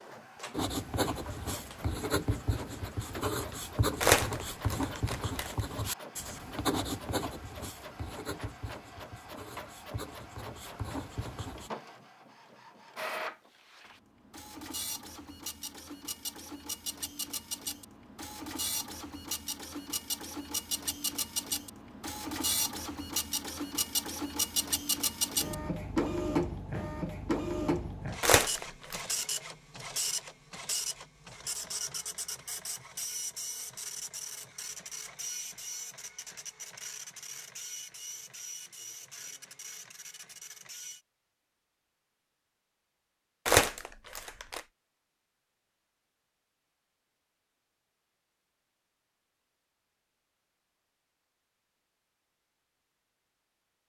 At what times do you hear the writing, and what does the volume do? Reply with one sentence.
The writing can be heard from 0.5 to 11.7 s, getting quieter.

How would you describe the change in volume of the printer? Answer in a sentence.
The loudness of the printer goes up, then down.